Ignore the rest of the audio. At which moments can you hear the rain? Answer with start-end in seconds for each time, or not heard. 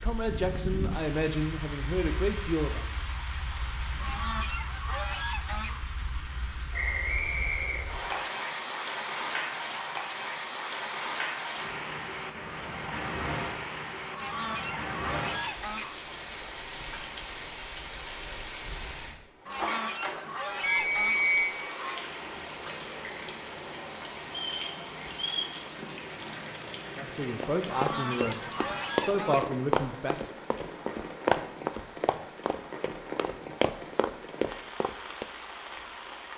0.0-36.3.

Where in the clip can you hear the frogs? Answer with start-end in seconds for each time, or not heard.
not heard.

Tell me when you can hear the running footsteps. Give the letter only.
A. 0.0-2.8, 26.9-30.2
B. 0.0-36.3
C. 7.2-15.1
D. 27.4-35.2
D.